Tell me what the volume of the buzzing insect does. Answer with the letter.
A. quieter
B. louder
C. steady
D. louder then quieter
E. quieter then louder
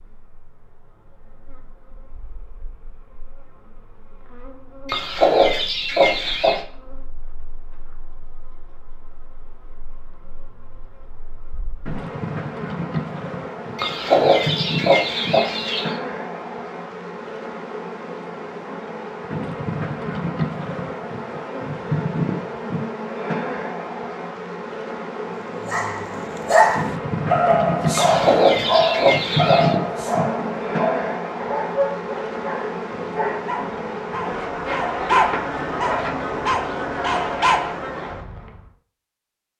B.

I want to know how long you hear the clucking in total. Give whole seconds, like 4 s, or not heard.
6 s.